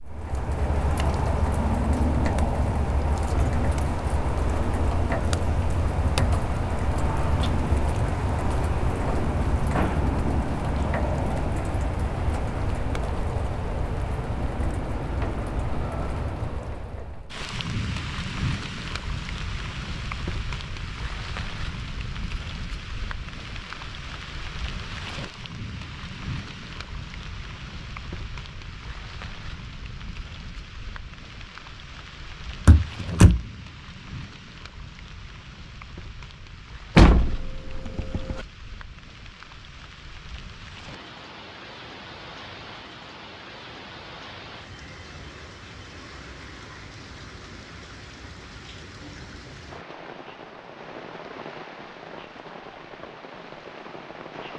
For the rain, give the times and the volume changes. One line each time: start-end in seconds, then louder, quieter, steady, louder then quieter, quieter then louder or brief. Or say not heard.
0.0-54.5 quieter.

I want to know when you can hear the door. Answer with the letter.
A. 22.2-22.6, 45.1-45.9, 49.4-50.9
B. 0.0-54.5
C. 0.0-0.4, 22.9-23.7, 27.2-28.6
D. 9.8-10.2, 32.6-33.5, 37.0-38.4
D.